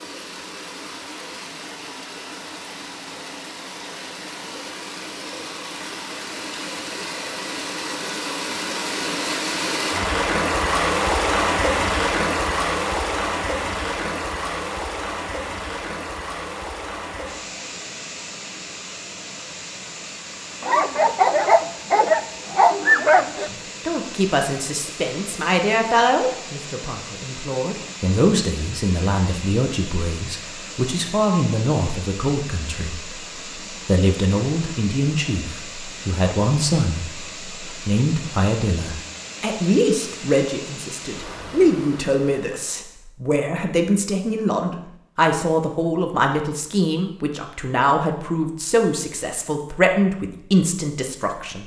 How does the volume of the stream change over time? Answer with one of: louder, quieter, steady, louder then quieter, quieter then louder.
louder then quieter.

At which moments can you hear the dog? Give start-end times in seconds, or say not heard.
20.6-23.5.